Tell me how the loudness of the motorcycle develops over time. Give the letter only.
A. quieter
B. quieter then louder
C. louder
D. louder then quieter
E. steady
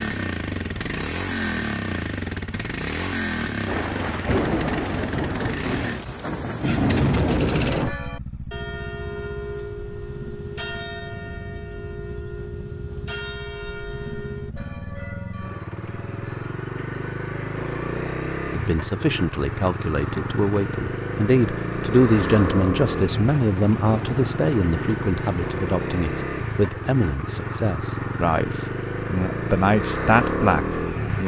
B.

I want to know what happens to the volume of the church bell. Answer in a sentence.
The loudness of the church bell goes down.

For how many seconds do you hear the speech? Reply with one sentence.
You can hear the speech for 13 seconds altogether.